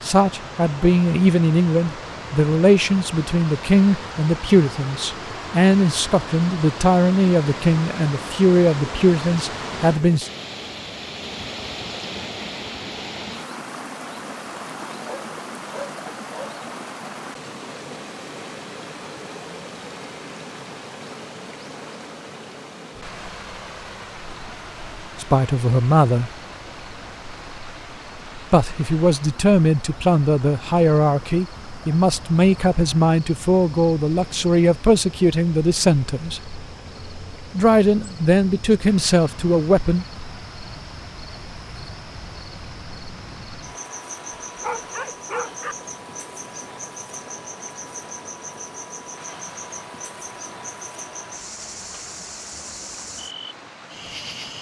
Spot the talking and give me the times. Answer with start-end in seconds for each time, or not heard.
0.0-10.3, 25.2-26.3, 28.5-36.4, 37.5-40.0.